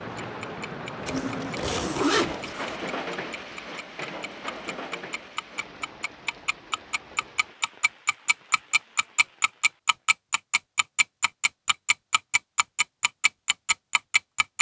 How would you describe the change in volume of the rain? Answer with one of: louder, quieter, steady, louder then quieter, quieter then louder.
quieter.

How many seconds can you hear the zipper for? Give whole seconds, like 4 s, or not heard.
2 s.